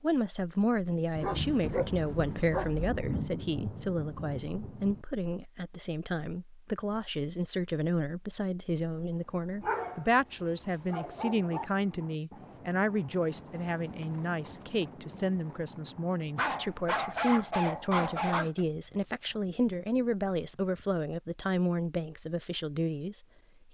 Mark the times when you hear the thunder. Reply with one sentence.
The thunder can be heard from 1.1 to 5.0 s.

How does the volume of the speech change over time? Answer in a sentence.
The volume of the speech stays about the same.